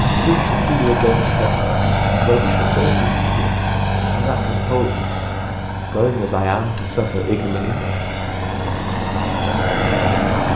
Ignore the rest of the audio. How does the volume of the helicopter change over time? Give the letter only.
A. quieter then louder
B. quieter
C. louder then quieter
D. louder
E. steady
A.